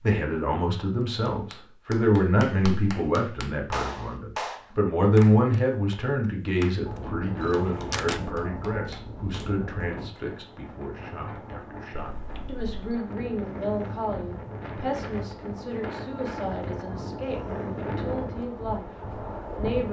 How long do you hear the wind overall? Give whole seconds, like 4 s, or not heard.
13 s.